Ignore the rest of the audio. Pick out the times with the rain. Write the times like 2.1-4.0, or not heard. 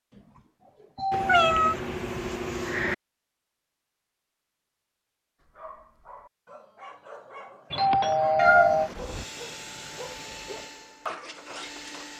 not heard.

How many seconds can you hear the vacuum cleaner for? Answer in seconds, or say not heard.
3 s.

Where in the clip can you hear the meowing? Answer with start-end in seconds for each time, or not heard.
1.1-3.0, 8.3-9.2.